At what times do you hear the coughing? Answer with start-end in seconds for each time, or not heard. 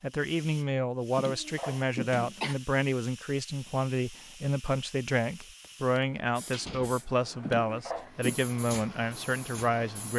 1.1-2.5, 7.4-8.3.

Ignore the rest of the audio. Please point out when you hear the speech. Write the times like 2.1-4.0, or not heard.
0.0-10.1.